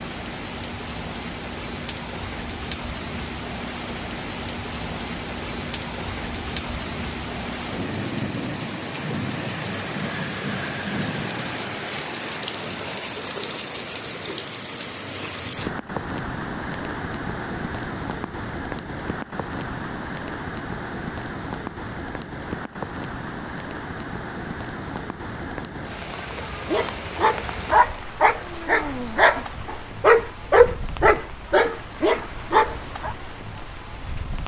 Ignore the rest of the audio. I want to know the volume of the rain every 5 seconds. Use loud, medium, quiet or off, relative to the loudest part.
loud, loud, loud, loud, loud, medium, medium.